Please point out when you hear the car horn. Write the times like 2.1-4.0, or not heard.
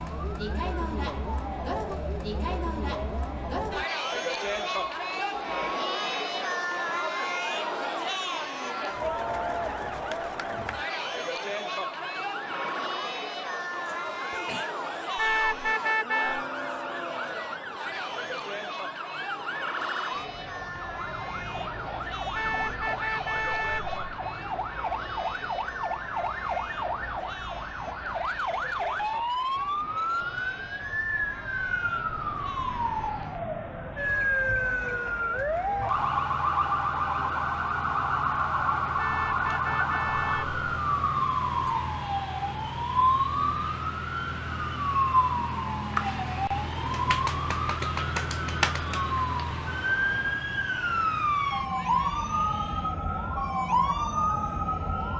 15.2-16.4, 22.4-23.9, 39.0-40.5.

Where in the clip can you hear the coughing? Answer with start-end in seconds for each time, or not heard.
13.8-14.7.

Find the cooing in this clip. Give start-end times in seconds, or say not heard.
not heard.